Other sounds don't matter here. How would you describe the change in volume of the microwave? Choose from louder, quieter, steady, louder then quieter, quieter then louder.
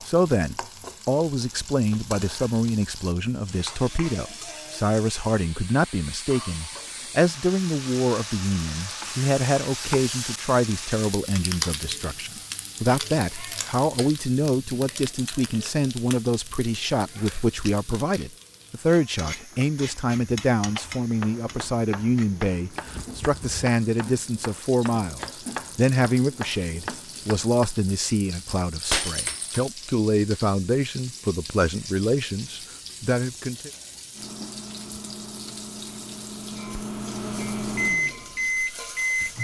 louder.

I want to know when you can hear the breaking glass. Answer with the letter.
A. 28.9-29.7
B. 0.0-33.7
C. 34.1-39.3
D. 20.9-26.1
A.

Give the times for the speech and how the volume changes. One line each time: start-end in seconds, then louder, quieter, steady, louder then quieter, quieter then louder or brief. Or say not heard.
0.0-33.7 steady.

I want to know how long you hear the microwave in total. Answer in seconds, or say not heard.
5 s.